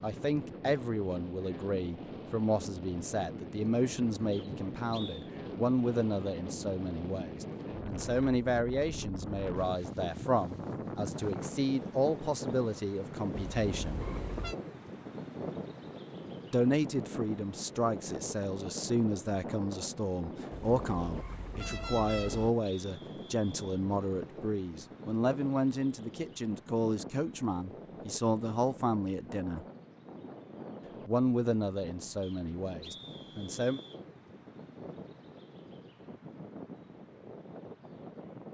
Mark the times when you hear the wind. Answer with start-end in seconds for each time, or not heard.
0.0-38.4.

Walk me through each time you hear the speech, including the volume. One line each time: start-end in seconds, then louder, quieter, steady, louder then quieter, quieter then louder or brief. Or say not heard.
0.0-14.0 steady
16.5-29.6 steady
31.1-33.8 brief.